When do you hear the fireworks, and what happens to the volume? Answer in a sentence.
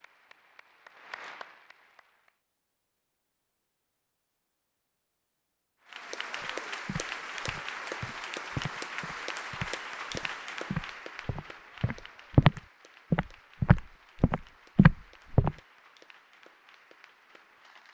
You can't hear the fireworks here.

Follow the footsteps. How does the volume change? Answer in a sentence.
The loudness of the footsteps goes up.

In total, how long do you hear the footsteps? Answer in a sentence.
The footsteps can be heard for 9 seconds in total.